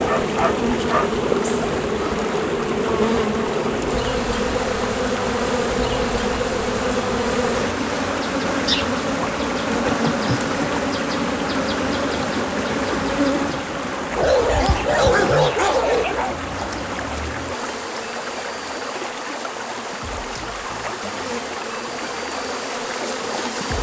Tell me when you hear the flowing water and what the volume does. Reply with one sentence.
You can hear the flowing water from 0.0 to 23.7 s, at a steady volume.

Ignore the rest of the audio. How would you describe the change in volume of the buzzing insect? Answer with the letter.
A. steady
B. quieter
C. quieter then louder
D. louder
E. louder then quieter
B.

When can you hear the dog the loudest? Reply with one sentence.
The volume of the dog peaks at 15 seconds.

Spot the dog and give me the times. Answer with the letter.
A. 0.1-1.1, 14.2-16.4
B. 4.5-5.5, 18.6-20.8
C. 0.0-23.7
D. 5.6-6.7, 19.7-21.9
A.